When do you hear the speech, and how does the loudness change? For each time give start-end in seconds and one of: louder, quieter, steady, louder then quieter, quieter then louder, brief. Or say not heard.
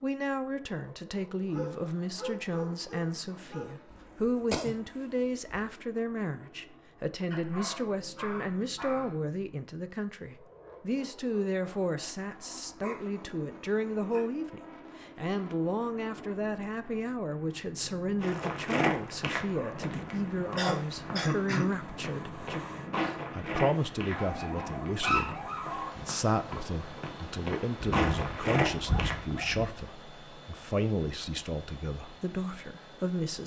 0.0-33.4 steady.